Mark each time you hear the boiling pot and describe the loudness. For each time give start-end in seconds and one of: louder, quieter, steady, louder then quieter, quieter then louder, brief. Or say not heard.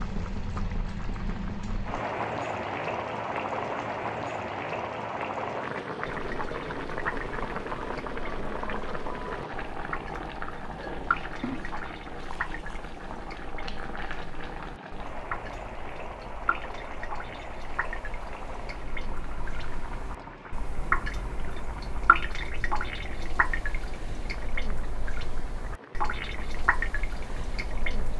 0.0-28.1 quieter.